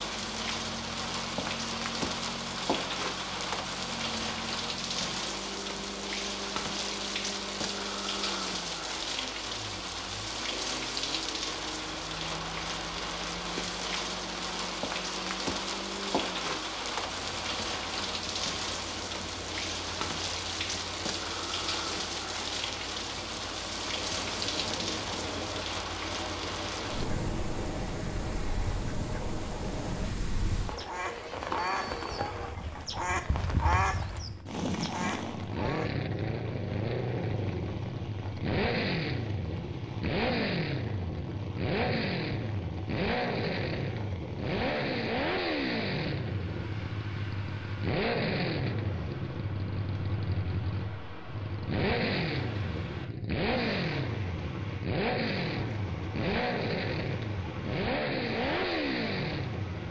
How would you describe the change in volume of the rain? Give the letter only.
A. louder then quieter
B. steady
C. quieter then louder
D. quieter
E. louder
D.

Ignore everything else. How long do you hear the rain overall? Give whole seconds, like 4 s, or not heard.
60 s.